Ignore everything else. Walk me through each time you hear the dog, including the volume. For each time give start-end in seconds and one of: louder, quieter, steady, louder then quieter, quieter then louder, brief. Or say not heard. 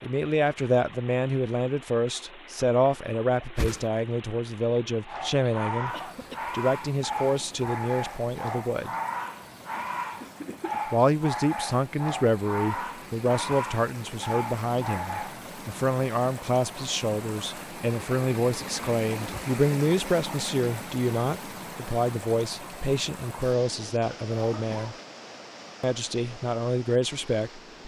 5.0-15.4 steady.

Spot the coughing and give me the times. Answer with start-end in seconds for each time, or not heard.
5.9-6.5, 9.8-10.8, 24.3-25.0.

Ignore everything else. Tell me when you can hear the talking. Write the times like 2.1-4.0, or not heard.
0.0-5.9, 6.5-8.9, 10.8-24.9, 25.8-27.6.